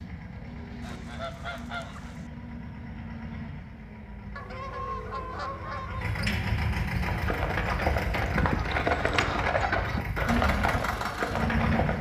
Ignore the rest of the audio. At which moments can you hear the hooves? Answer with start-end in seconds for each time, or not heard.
7.0-11.9.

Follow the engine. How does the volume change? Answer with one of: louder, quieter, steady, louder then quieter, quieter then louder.
louder.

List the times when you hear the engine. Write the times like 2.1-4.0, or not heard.
0.0-11.9.